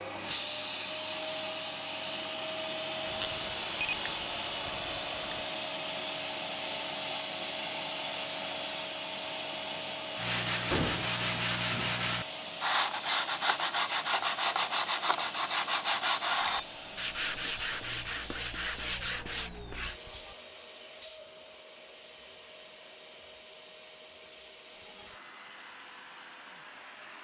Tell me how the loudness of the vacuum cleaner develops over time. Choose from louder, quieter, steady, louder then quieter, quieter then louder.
quieter.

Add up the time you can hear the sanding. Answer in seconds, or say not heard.
10 s.